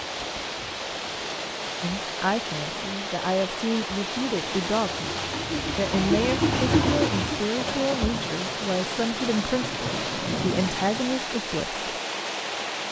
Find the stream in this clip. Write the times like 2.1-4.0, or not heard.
0.0-12.8.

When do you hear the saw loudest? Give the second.
7 s.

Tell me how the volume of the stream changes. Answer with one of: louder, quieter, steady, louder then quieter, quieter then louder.
steady.